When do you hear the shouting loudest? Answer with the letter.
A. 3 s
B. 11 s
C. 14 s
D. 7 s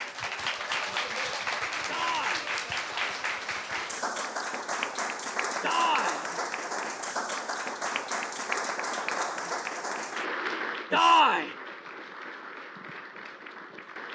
B.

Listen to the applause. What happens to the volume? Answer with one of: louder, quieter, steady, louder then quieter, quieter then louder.
quieter.